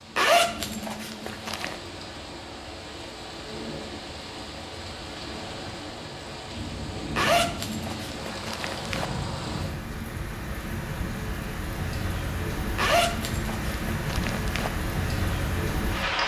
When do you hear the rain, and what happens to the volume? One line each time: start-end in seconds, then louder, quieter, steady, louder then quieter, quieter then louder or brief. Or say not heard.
0.0-16.2 louder.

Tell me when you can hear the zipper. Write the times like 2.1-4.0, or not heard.
0.1-1.8, 7.2-9.1, 12.8-14.7.